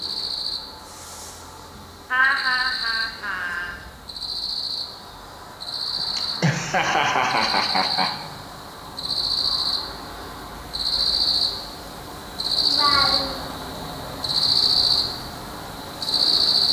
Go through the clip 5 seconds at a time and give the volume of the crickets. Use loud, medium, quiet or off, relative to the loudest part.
medium, medium, loud, loud.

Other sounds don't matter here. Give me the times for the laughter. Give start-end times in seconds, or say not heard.
2.1-3.8, 6.2-8.1, 12.6-13.6.